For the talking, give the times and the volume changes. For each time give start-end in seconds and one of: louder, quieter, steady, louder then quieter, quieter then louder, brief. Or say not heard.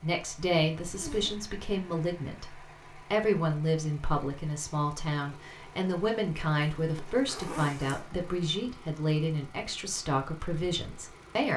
0.0-11.5 steady.